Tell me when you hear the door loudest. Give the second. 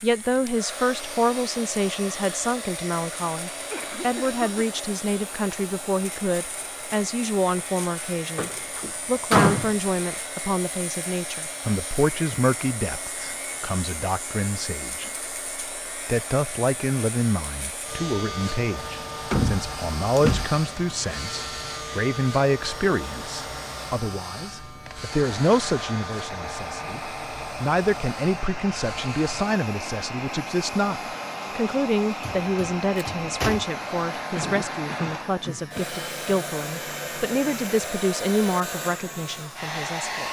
9 s.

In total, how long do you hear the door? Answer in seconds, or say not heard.
5 s.